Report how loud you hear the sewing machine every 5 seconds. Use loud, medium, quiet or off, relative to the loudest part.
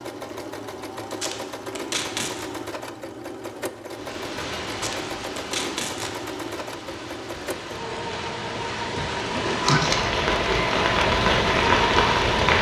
medium, medium, loud.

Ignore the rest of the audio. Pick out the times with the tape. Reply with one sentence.
You can hear the tape from 1.1 to 2.5 s, from 4.7 to 6.1 s and from 9.6 to 10.1 s.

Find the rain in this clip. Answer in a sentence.
The rain can be heard from 3.9 to 12.5 s.